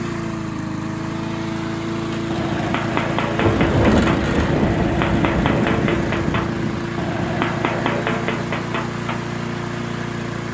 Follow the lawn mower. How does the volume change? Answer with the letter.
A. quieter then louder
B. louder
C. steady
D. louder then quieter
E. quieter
C.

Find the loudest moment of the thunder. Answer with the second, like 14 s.
4 s.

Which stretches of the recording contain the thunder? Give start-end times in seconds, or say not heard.
3.4-6.9.